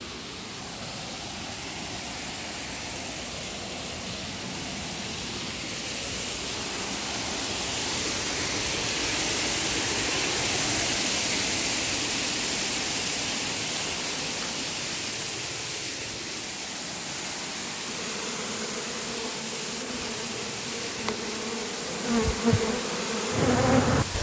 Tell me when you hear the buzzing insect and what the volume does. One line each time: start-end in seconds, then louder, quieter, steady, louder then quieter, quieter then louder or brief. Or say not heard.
17.8-24.1 louder.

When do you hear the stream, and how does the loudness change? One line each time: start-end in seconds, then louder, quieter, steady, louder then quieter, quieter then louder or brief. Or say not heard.
0.0-24.1 louder then quieter.